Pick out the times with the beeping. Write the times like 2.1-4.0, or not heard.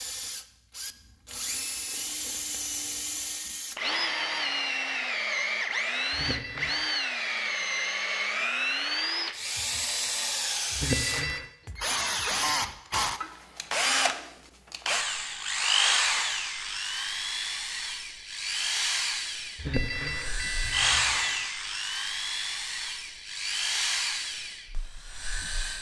6.1-6.8, 10.8-11.5, 19.6-21.6.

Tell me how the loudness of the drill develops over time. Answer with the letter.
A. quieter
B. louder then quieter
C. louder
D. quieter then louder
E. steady
E.